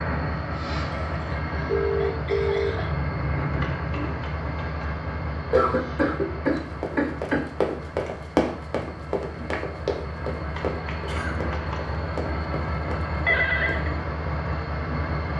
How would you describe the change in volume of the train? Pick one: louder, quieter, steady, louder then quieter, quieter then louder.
quieter then louder.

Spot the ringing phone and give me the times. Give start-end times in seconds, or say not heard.
1.6-4.2, 13.2-13.9.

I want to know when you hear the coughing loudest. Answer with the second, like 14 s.
6 s.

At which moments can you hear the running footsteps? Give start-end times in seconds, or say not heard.
6.5-13.8.